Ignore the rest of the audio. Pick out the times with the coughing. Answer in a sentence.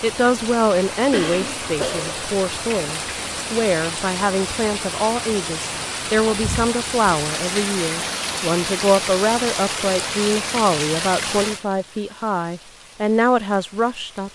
The coughing can be heard from 1.1 to 2.2 s.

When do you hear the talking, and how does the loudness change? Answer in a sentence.
The talking can be heard from 0.0 to 14.2 s, at a steady volume.